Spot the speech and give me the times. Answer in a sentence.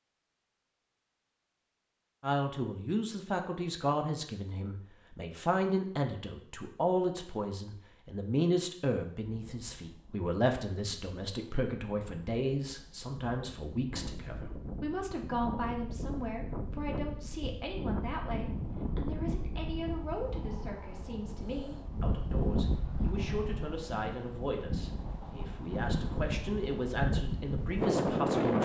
The speech can be heard from 2.2 to 28.6 s.